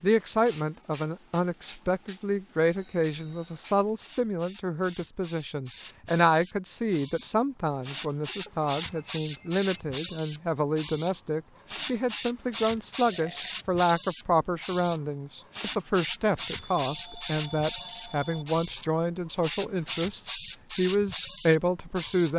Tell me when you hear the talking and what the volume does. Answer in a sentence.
The talking can be heard from 0.0 to 22.3 s, at a steady volume.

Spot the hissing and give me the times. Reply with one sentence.
You can hear the hissing from 0.0 to 22.3 s.